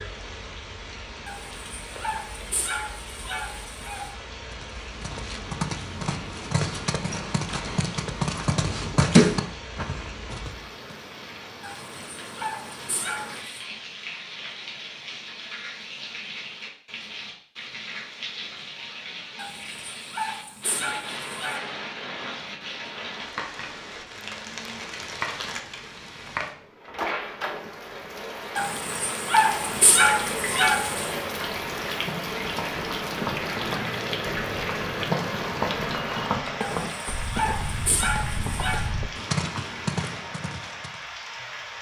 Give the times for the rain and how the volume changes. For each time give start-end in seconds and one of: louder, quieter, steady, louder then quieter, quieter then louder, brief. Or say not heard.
0.0-41.7 louder.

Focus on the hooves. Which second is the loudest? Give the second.
9 s.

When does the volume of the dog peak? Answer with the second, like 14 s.
30 s.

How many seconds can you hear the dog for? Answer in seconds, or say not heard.
12 s.